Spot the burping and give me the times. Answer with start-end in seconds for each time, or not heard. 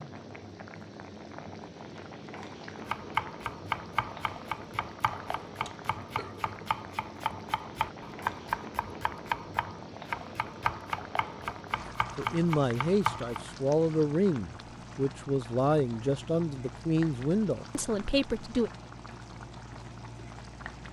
5.7-6.7.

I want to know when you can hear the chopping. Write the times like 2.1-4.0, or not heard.
2.8-13.4.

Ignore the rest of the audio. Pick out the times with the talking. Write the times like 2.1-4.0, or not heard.
12.2-18.7.